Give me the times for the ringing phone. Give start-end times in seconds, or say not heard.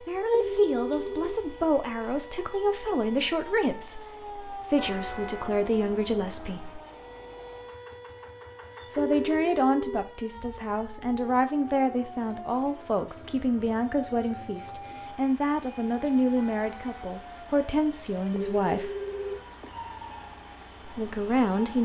0.3-1.8, 8.9-10.1, 18.4-19.8.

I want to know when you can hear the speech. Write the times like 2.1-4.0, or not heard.
0.1-6.8, 8.9-18.9, 20.9-21.7.